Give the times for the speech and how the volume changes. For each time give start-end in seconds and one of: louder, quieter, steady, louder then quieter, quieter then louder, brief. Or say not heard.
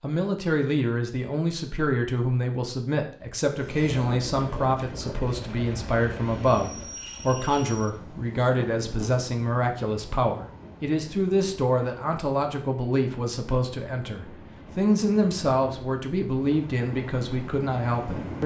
0.0-18.4 steady.